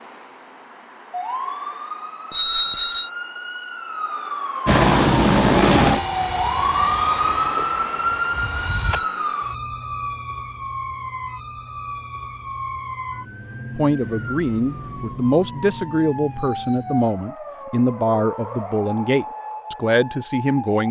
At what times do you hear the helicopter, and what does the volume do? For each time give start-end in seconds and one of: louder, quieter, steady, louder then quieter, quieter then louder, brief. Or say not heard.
4.7-9.0 quieter.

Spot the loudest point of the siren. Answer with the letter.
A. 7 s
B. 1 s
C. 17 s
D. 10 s
A.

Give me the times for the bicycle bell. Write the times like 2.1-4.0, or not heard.
2.3-3.1, 8.8-9.3, 16.3-17.1.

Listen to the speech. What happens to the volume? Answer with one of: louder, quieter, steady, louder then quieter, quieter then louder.
steady.